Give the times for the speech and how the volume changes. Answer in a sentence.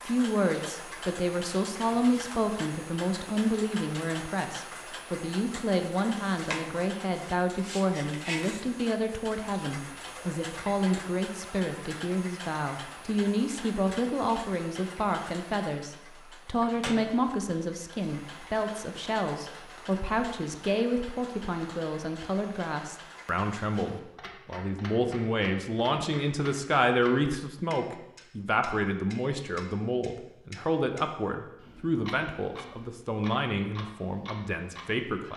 You can hear the speech from 0.1 to 35.3 s, at a steady volume.